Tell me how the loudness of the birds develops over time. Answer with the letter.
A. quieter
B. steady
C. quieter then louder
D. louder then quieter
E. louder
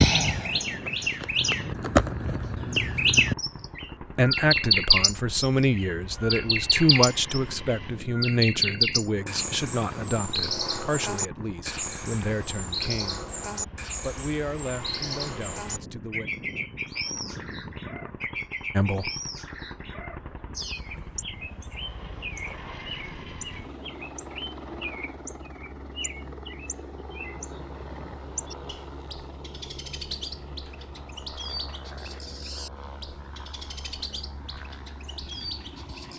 A.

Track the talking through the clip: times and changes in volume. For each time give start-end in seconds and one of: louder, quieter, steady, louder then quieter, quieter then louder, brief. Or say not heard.
4.0-13.2 quieter
13.9-16.2 brief
18.7-19.1 brief.